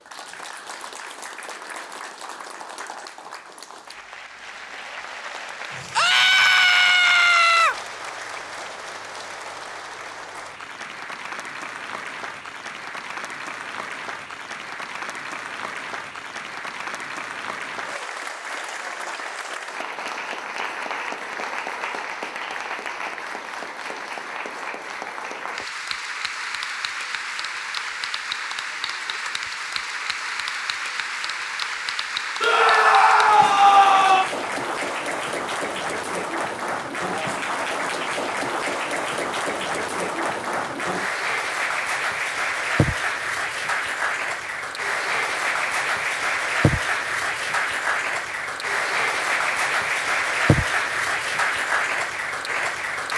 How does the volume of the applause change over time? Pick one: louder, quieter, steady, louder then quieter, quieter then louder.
louder.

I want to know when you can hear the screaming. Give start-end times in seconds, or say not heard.
6.0-7.8, 32.4-34.3.